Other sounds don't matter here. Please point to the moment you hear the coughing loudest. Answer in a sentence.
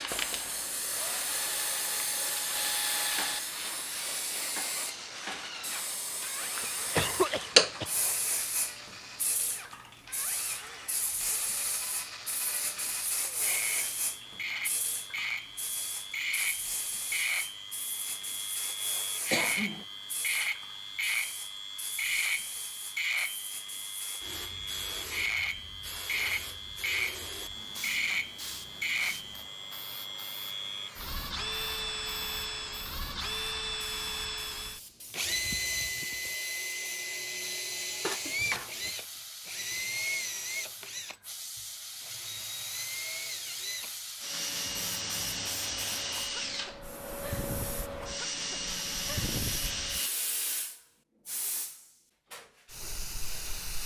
The volume of the coughing peaks at 7 seconds.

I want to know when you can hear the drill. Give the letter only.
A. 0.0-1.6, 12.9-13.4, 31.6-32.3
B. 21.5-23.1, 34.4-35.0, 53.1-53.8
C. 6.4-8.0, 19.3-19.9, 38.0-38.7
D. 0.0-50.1
D.